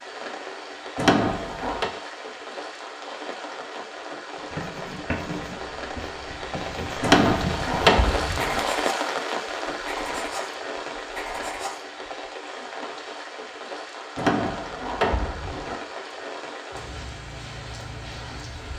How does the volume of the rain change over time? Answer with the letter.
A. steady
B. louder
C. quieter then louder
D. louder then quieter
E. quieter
D.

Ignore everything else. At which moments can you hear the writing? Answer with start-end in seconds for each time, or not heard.
4.3-12.1.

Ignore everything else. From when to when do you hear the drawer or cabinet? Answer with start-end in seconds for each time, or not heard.
0.9-1.9, 7.0-8.6, 14.2-15.8.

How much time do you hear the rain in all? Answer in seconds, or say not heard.
19 s.